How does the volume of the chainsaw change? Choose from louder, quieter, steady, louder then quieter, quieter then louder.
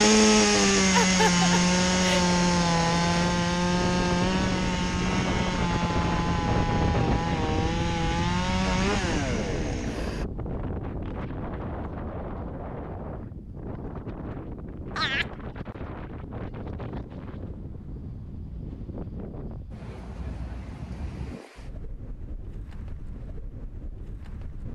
quieter.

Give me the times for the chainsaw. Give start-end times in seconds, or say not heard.
0.0-10.2.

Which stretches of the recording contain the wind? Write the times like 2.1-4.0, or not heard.
0.0-24.6.